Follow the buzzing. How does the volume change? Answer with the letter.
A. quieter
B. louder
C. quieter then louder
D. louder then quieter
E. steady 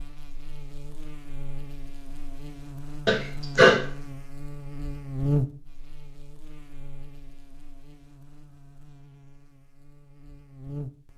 D.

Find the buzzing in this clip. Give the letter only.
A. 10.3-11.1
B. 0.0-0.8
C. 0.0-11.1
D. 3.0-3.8
C.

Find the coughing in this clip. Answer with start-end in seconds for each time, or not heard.
3.0-3.8.